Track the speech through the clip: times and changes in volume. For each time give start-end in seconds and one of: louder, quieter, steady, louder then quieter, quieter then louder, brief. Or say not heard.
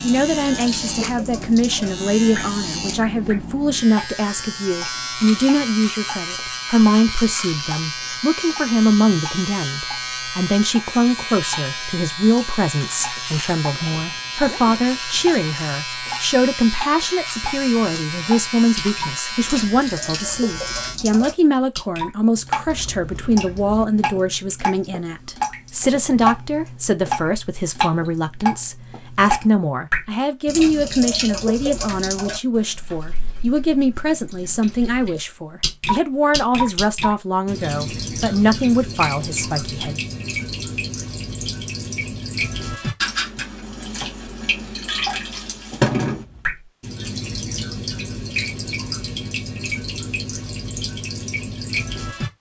0.0-40.0 steady.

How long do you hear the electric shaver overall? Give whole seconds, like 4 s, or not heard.
21 s.